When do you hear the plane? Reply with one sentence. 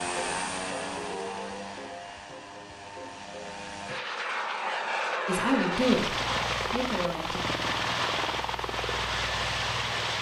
You can hear the plane from 0.0 to 10.1 s.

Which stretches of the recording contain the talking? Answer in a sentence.
The talking can be heard from 5.2 to 7.5 s.